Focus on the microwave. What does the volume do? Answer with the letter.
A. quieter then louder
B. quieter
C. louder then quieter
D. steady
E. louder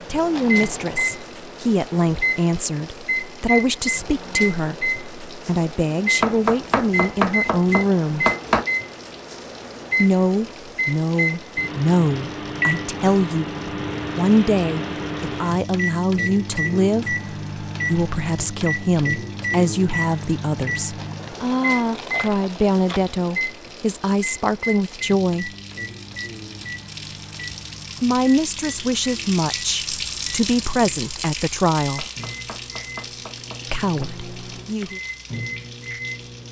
B.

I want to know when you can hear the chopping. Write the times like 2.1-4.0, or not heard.
6.2-8.7, 31.9-34.1.